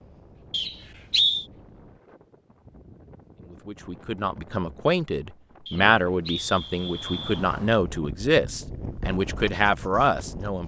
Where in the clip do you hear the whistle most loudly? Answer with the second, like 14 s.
1 s.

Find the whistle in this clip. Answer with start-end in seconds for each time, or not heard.
0.5-1.4, 5.7-7.5.